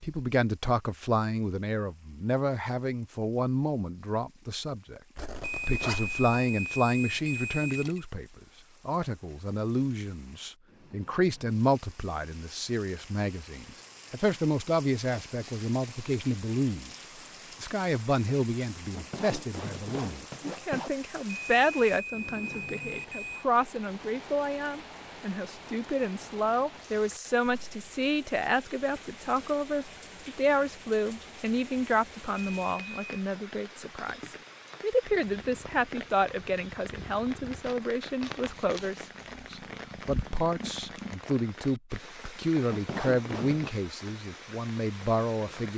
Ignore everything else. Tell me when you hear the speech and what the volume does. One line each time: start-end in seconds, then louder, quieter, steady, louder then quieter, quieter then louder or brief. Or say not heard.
0.0-16.9 steady
17.6-45.7 steady.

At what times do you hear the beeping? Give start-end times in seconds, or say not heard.
5.4-8.1, 21.2-23.4, 32.6-33.2.